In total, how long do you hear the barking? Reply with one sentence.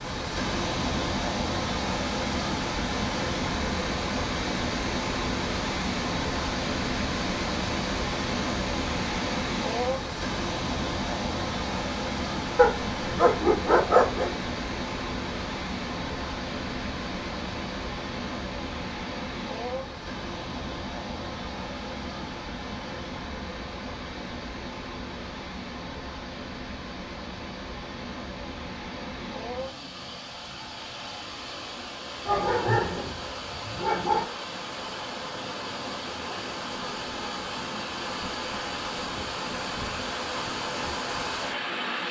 The barking can be heard for 4 seconds in total.